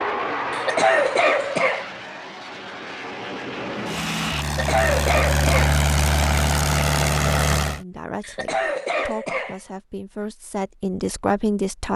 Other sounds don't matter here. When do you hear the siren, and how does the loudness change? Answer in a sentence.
You can't hear the siren here.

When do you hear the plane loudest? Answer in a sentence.
The loudest moment of the plane is at 7 seconds.